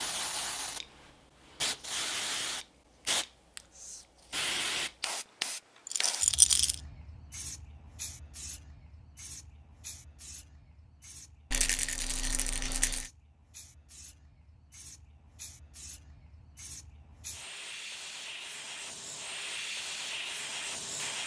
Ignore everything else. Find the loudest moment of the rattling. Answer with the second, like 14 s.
6 s.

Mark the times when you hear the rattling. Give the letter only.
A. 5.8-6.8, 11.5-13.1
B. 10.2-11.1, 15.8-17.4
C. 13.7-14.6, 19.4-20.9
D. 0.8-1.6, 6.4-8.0
A.